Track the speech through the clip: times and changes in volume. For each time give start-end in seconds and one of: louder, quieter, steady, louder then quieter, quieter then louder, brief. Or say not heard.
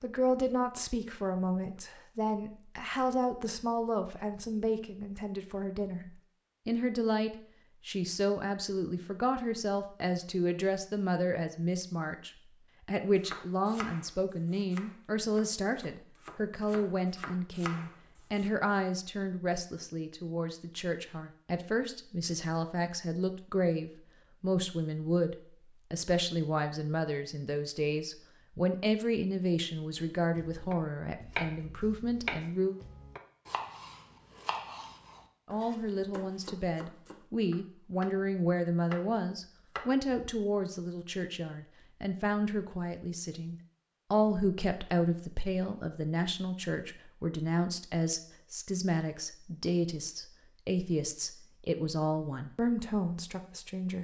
0.0-32.8 steady
35.5-53.9 steady.